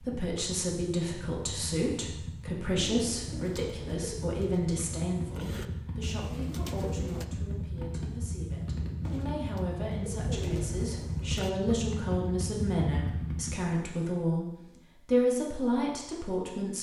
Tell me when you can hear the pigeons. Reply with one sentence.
You can hear the pigeons from 2.8 to 7.2 s and from 9.0 to 11.5 s.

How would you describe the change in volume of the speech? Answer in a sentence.
The volume of the speech goes down, then up.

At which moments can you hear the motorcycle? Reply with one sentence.
The motorcycle can be heard from 0.0 to 13.8 s.